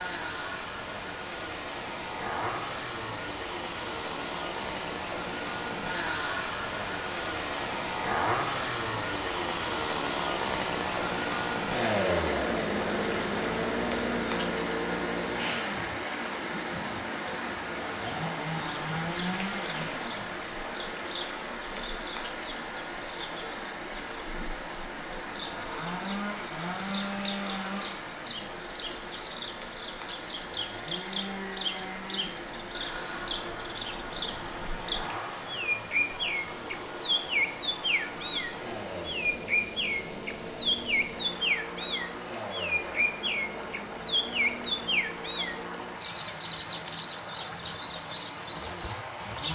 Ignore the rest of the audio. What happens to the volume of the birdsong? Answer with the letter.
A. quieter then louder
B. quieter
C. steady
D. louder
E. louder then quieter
D.